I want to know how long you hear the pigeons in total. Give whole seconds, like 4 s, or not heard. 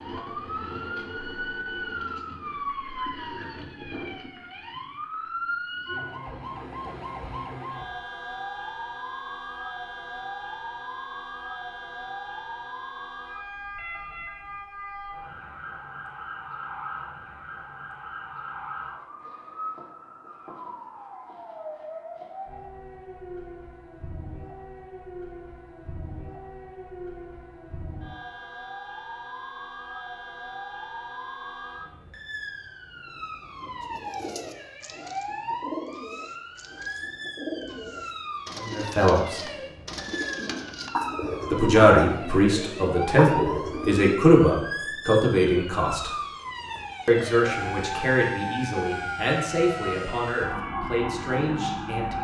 11 s.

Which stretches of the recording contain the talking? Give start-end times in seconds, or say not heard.
38.6-39.4, 41.5-46.1, 47.0-52.1.